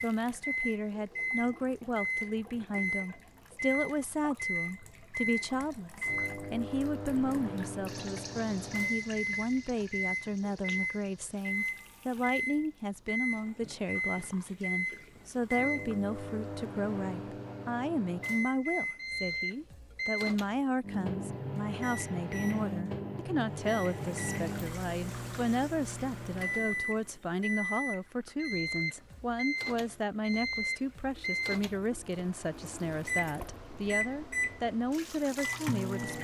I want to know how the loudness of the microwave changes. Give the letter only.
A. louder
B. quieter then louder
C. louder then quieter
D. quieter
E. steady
E.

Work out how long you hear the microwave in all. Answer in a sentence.
You can hear the microwave for 36 seconds altogether.